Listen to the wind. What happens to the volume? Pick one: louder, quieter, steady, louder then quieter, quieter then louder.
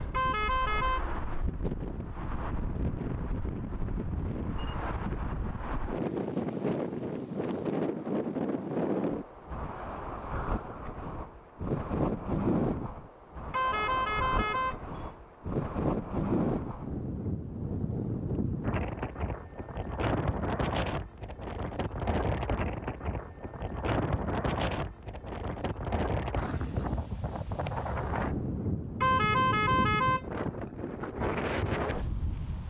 steady.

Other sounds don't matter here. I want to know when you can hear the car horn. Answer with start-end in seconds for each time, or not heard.
0.1-1.0, 13.5-15.1, 29.0-30.2.